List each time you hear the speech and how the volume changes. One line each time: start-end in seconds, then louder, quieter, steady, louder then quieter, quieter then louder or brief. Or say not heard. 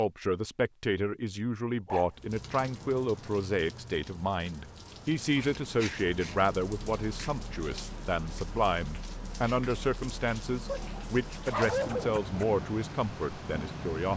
0.0-14.1 steady.